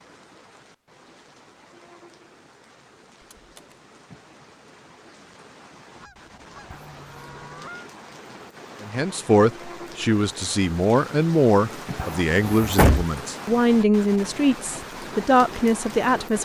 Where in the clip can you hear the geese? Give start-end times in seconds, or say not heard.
6.0-7.9.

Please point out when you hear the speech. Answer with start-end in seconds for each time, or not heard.
8.8-16.3.